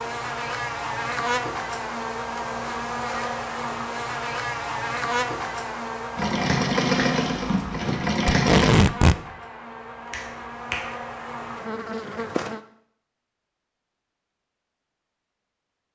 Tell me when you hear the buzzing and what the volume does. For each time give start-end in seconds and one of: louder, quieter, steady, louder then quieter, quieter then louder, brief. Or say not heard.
0.0-12.6 quieter.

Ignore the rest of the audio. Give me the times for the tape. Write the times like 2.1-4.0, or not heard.
8.2-9.2.